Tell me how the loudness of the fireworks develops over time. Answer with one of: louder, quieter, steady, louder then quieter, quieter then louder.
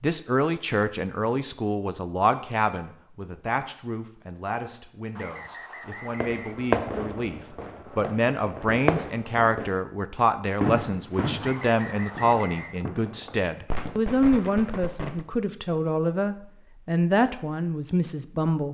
quieter.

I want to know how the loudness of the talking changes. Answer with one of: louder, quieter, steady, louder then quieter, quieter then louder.
quieter then louder.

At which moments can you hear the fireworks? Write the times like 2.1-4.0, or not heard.
6.1-9.8, 10.6-15.2.